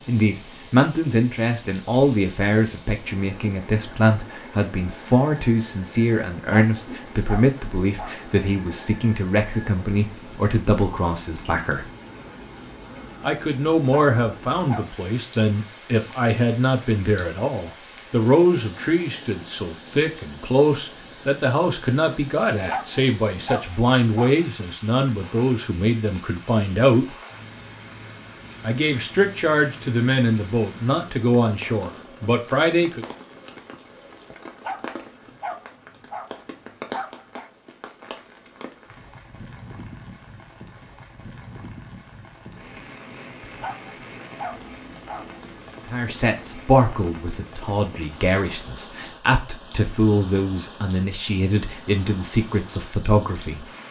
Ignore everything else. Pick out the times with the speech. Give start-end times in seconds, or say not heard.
0.1-11.8, 13.2-27.1, 28.6-33.0, 45.9-53.8.